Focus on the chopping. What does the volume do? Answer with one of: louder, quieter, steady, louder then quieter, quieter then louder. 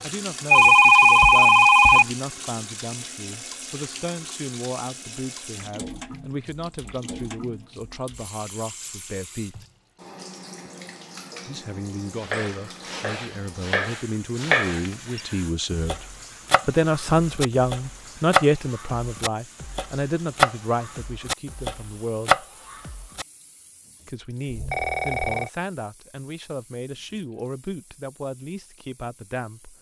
quieter then louder.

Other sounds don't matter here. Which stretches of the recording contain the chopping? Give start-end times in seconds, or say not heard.
12.2-23.2.